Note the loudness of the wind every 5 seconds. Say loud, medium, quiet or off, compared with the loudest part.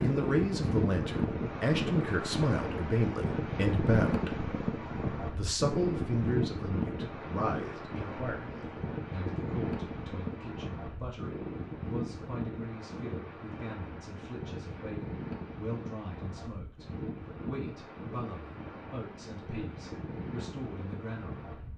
loud, loud, medium, medium, medium.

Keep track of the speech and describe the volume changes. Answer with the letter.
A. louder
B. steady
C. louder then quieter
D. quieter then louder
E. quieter
E.